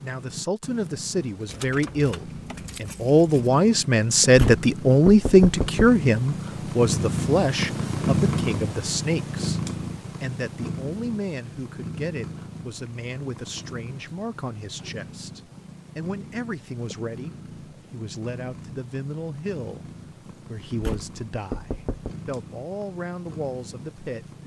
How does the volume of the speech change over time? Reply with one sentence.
The loudness of the speech goes down.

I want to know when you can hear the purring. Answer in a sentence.
The purring can be heard from 0.0 to 24.4 s.